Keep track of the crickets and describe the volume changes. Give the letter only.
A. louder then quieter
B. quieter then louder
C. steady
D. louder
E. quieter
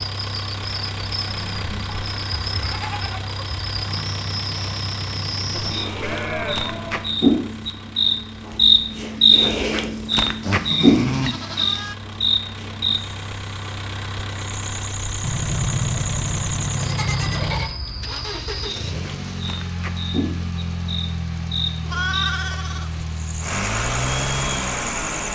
A.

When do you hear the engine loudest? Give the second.
24 s.